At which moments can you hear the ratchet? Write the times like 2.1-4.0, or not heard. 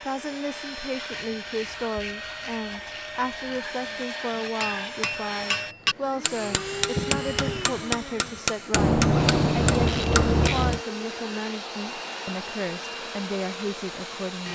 1.1-3.6, 8.7-10.8.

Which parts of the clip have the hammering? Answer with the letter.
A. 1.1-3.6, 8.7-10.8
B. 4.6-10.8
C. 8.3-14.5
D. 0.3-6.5
B.